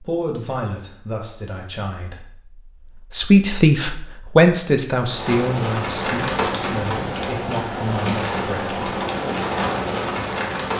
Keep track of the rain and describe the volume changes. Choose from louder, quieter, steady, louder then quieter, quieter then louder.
steady.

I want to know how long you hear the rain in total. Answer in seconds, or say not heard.
6 s.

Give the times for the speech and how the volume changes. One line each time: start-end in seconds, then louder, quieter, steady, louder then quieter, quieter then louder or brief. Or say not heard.
0.0-8.8 louder then quieter.